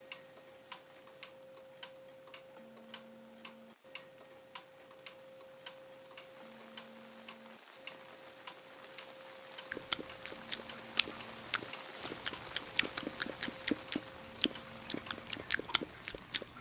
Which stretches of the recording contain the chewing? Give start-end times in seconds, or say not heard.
9.7-16.5.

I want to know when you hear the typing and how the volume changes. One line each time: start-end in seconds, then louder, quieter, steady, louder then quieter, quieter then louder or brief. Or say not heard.
not heard.